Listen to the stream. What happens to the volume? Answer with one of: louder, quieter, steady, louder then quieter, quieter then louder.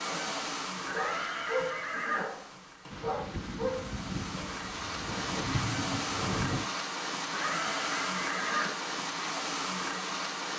quieter then louder.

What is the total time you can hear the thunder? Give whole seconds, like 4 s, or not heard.
4 s.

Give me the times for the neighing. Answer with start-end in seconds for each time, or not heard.
0.8-2.2, 7.2-8.7.